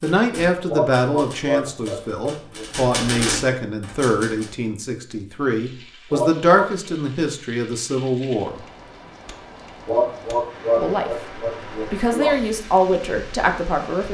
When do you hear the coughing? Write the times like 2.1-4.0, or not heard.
0.7-2.6, 6.1-6.9, 9.8-12.3.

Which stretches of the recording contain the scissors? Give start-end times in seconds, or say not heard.
not heard.